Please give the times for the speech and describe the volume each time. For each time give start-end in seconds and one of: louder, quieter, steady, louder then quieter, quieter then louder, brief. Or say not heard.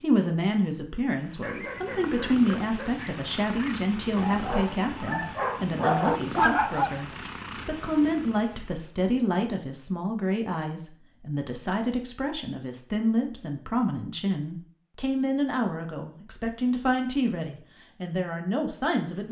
0.0-19.2 steady.